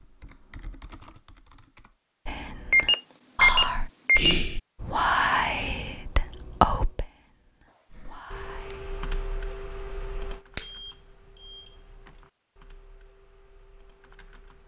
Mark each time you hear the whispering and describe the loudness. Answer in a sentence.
You can hear the whispering from 2.2 to 9.1 s, getting quieter.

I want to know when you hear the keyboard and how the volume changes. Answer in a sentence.
You can hear the keyboard briefly from 0.0 to 2.0 s; and from 7.9 to 14.6 s, getting quieter.